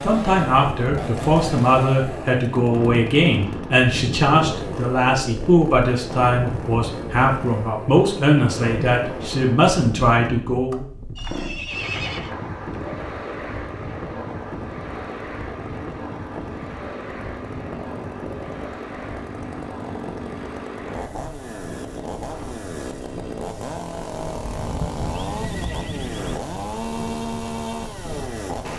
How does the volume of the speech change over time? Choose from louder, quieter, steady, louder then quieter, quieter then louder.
steady.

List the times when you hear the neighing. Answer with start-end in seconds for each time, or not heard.
11.2-12.3, 24.4-26.4.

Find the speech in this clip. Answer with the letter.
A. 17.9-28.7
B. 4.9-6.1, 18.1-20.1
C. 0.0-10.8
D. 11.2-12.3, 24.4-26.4
C.